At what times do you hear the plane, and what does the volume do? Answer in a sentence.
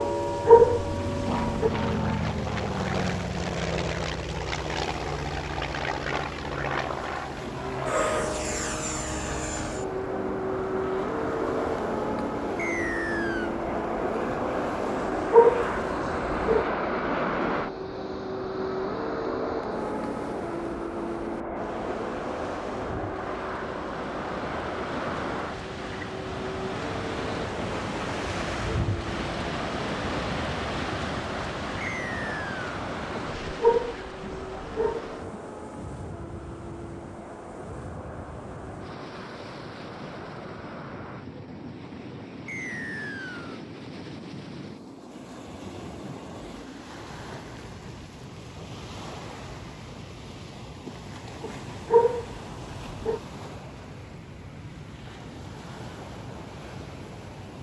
The plane can be heard from 0.0 to 57.5 s, getting quieter.